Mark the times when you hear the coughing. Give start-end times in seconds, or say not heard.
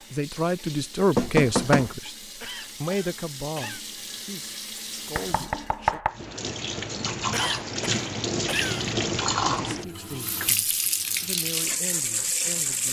2.4-3.9, 7.3-8.9.